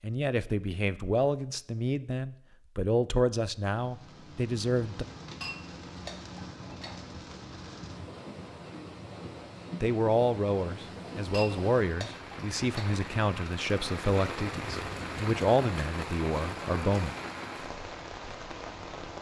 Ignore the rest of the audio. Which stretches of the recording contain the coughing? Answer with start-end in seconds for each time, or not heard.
not heard.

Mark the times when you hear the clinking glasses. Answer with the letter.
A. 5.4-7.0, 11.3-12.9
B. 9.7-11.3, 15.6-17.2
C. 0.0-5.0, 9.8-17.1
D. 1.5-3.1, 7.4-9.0
A.